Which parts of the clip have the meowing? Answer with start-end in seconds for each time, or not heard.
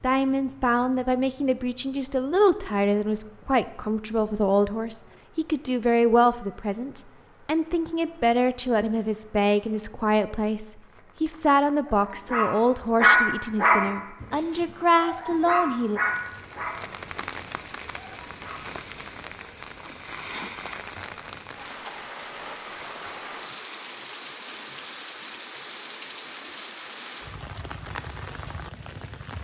not heard.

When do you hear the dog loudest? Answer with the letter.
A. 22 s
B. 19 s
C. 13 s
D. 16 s
C.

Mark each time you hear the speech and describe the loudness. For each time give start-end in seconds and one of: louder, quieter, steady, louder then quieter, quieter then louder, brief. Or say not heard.
0.0-16.0 steady.